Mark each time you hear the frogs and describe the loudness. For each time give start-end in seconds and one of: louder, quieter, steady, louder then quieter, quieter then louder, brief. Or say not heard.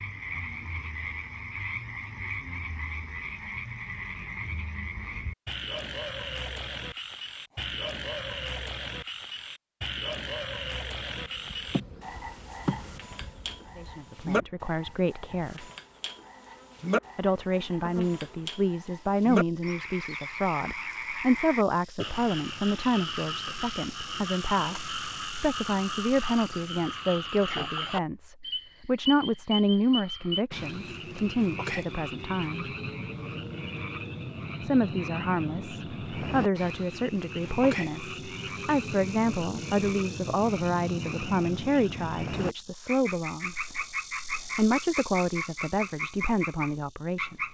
0.0-47.5 steady.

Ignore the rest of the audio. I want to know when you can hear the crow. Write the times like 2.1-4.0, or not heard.
not heard.